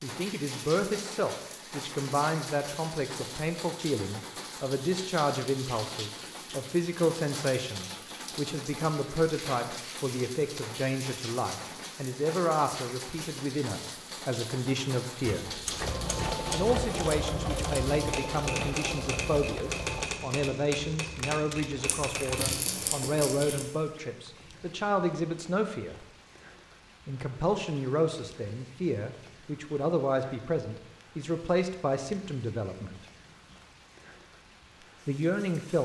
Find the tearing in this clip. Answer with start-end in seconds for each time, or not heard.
21.9-23.6.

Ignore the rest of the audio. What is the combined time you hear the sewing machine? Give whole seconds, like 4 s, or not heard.
4 s.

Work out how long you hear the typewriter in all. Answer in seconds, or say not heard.
7 s.